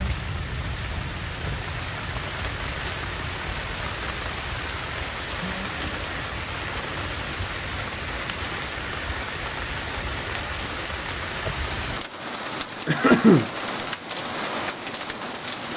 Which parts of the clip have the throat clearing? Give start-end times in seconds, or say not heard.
12.8-13.5.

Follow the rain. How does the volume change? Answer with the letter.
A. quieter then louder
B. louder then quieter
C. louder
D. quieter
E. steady
E.